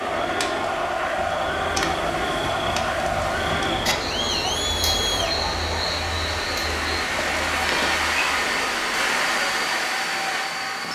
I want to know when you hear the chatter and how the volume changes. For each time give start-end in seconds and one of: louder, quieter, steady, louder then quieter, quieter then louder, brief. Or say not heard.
0.0-10.9 quieter.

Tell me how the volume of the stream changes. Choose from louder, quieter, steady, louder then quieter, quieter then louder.
louder.